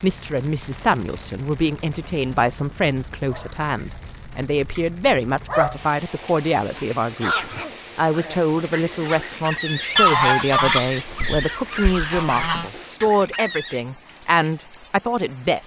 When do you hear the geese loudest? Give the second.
10 s.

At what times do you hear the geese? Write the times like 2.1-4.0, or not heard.
9.9-12.7.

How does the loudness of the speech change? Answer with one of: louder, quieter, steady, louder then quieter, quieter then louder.
steady.